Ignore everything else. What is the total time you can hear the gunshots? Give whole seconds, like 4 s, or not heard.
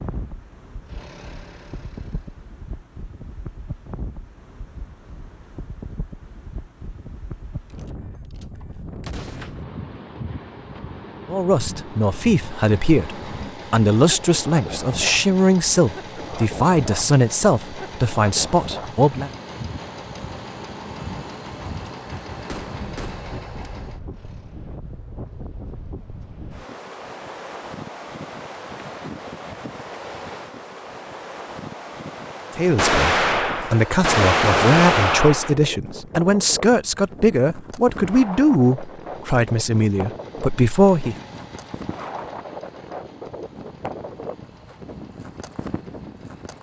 6 s.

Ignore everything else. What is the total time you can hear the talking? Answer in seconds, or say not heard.
17 s.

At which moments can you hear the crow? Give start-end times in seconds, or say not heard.
not heard.